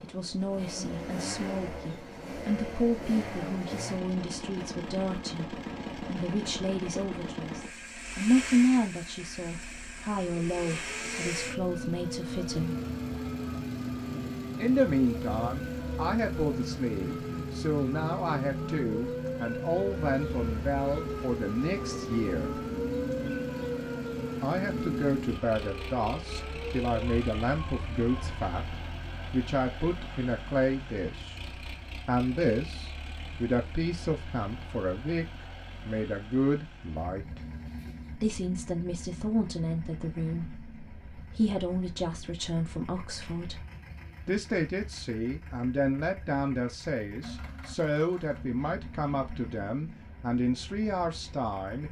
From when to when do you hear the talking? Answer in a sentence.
The talking can be heard from 0.0 to 12.8 s, from 14.6 to 22.6 s, from 24.4 to 37.4 s, from 38.1 to 43.6 s and from 44.2 to 51.8 s.